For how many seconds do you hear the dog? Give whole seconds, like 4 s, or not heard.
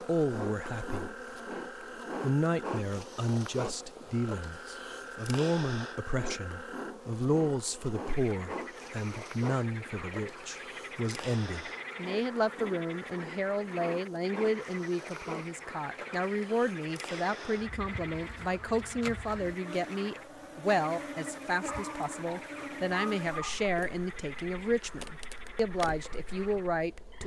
2 s.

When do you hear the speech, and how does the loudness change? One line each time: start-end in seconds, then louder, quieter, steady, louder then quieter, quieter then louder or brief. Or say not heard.
0.0-1.1 brief
2.2-27.2 steady.